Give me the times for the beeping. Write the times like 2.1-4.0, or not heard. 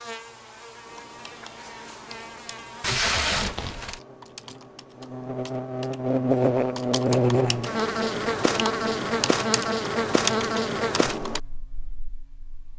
not heard.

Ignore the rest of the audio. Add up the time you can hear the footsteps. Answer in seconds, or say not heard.
not heard.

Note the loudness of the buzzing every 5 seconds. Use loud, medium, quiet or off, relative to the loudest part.
quiet, loud, medium.